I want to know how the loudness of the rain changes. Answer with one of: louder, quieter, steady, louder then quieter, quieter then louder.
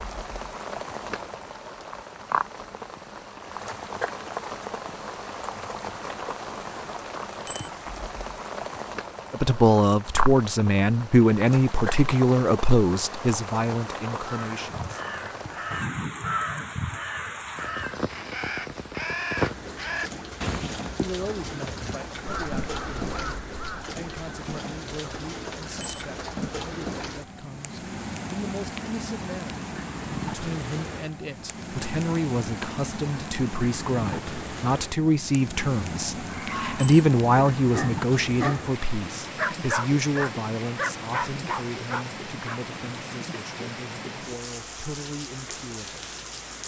steady.